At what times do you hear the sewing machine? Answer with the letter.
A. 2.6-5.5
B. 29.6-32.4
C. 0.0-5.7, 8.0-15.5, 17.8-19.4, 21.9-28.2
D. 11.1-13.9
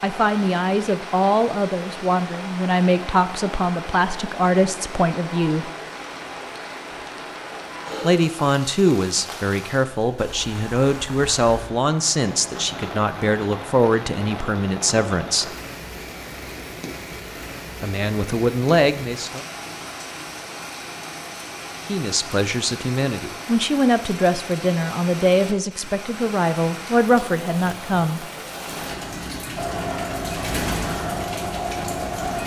B.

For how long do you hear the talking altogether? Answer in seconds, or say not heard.
21 s.